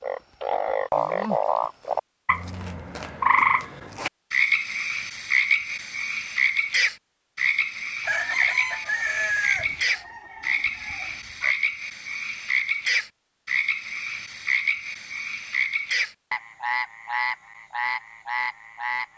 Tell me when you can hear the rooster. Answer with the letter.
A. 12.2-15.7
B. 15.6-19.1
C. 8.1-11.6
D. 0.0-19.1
C.